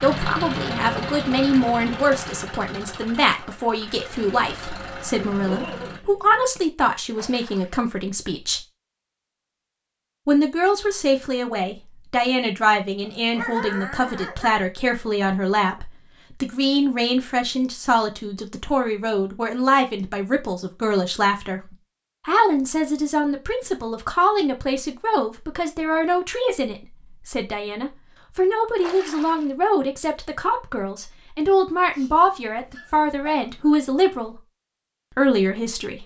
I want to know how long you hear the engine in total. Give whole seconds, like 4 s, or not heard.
6 s.